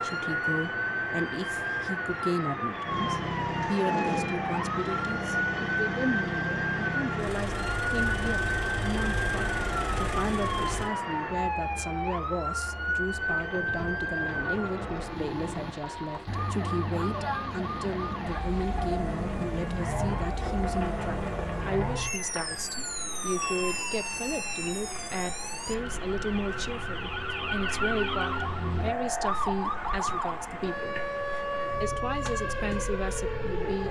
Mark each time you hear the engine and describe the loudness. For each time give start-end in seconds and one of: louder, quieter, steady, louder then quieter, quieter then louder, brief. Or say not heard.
2.9-10.9 steady.